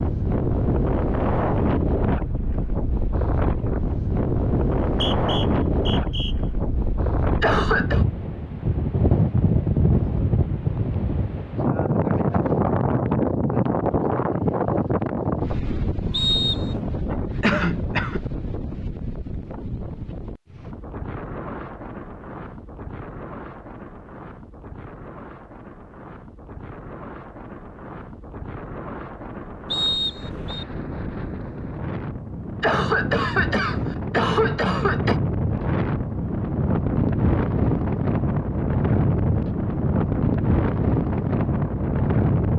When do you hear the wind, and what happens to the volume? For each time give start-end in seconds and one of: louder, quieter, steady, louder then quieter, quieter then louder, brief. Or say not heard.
0.0-42.5 quieter then louder.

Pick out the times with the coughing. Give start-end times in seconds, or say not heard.
7.4-8.1, 17.4-18.2, 32.6-35.2.